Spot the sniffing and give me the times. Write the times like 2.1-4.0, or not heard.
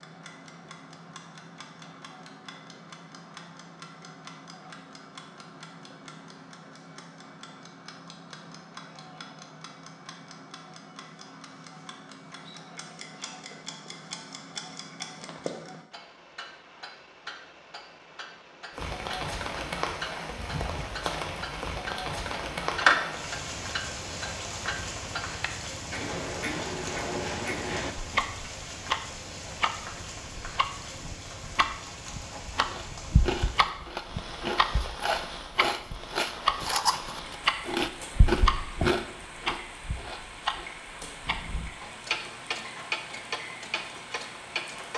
not heard.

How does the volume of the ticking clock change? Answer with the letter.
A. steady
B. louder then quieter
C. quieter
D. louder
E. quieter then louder
D.